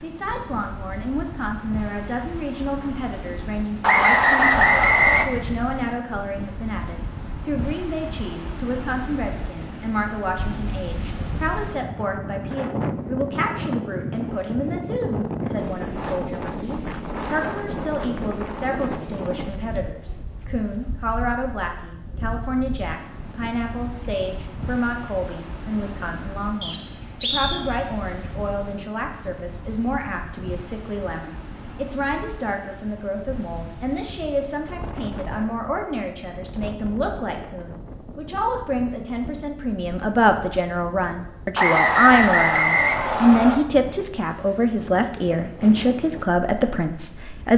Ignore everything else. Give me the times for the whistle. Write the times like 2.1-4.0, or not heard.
3.8-5.2, 26.6-27.6, 41.5-43.5.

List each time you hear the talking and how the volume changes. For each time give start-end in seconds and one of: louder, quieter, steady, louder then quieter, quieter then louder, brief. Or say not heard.
0.0-47.5 louder.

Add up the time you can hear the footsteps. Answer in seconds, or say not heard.
not heard.